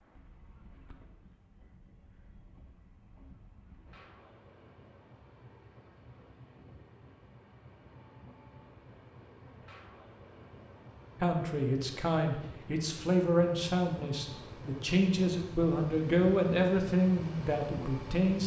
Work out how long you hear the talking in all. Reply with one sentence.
The talking can be heard for 7 seconds in total.